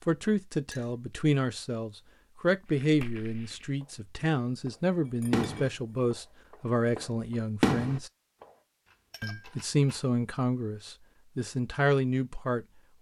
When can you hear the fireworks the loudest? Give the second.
8 s.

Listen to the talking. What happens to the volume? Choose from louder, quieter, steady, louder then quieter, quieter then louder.
steady.